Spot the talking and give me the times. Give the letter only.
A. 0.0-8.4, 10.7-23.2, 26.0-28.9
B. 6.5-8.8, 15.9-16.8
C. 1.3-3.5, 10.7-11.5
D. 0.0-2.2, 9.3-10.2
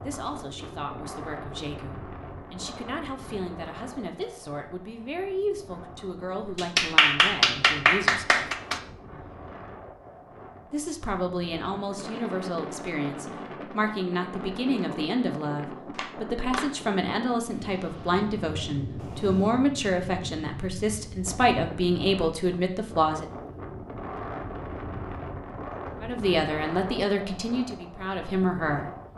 A.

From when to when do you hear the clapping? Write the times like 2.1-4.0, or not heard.
6.5-8.8, 15.9-16.8.